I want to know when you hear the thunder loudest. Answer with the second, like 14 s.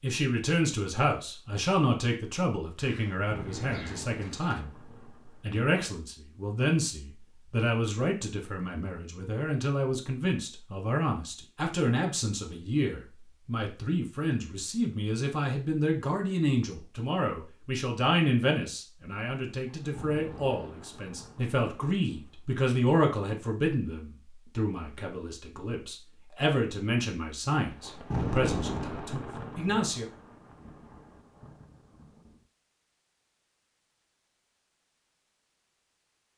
28 s.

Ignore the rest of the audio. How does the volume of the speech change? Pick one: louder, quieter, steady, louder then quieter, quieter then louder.
steady.